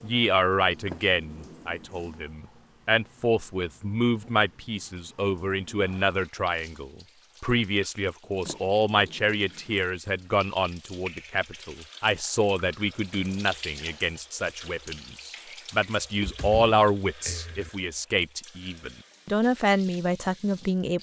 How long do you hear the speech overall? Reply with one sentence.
The speech can be heard for 21 seconds in total.